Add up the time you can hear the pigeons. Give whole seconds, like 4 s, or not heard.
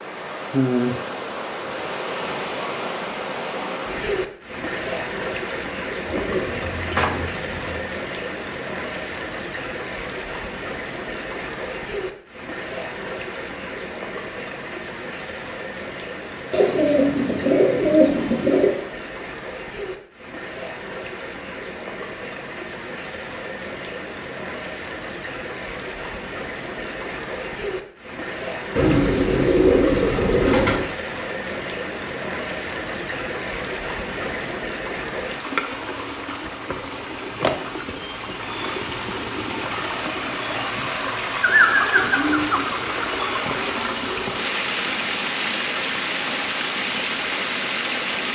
9 s.